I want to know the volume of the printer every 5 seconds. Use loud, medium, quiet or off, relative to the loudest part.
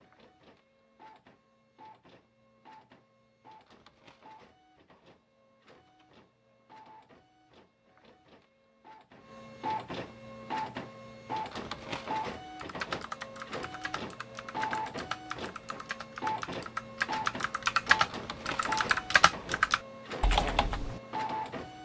quiet, medium, loud, loud, loud.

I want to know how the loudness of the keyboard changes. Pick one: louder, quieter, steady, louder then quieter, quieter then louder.
louder.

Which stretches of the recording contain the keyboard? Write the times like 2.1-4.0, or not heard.
12.6-21.0.